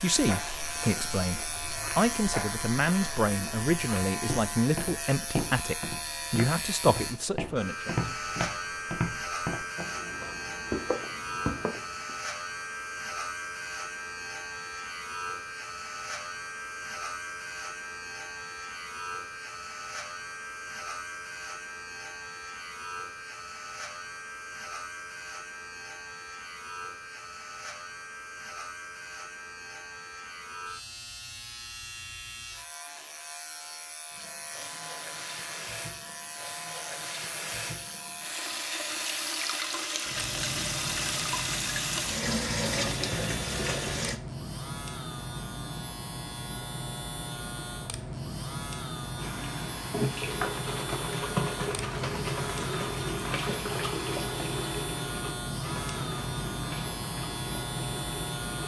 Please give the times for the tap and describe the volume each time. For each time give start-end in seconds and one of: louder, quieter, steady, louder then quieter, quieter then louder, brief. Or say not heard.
34.1-44.2 louder
49.1-58.6 quieter.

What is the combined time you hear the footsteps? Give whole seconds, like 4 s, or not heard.
12 s.